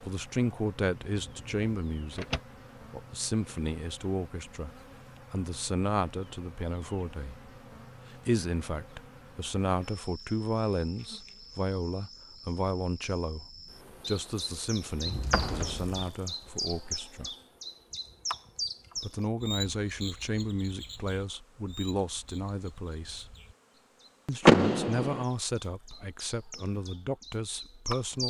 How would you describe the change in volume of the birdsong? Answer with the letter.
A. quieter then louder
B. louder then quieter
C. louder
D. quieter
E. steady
A.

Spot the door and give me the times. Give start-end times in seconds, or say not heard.
1.1-2.4, 15.1-16.1, 24.4-25.2.